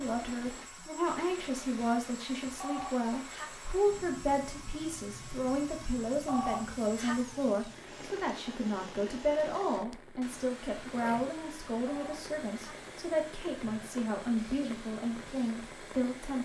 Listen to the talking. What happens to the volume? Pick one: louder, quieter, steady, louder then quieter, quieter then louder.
steady.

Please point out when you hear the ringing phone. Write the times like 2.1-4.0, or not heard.
2.4-3.5, 6.1-7.2, 11.7-12.7.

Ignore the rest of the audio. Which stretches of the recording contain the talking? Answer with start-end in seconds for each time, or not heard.
0.0-16.4.